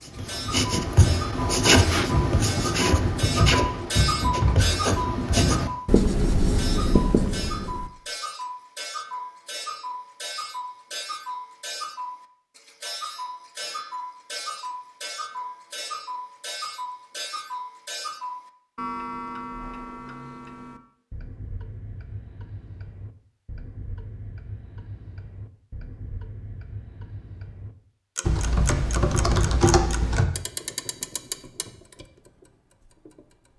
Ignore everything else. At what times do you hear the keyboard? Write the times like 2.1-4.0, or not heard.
2.1-4.5, 28.2-30.2.